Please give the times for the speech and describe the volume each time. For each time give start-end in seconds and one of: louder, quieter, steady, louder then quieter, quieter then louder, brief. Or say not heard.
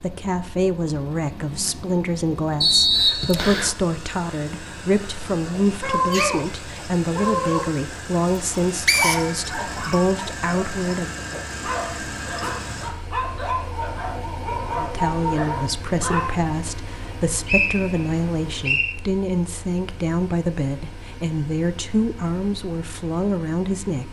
0.0-11.2 steady
14.8-24.0 steady.